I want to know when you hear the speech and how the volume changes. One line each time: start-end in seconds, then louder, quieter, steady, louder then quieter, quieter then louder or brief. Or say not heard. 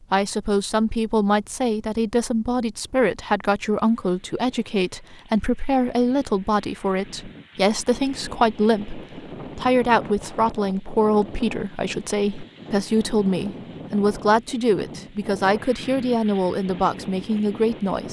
0.0-18.0 steady.